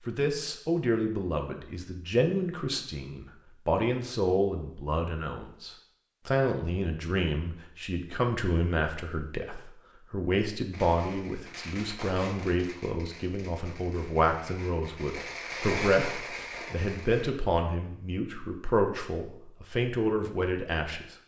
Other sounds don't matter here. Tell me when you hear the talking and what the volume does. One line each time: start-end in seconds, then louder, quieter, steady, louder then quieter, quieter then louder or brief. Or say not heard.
0.1-21.1 steady.